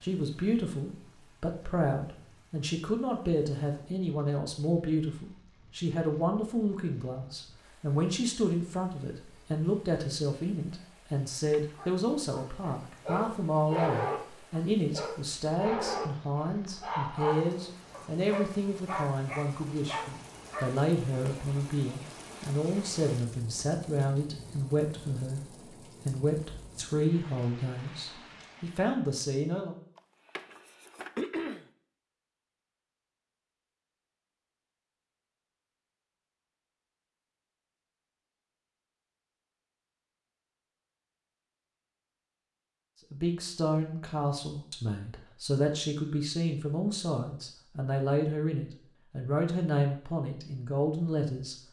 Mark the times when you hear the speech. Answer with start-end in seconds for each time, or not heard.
0.0-29.8, 43.1-51.5.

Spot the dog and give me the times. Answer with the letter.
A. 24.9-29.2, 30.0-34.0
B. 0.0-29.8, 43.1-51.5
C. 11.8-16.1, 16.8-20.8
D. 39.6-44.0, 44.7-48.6
C.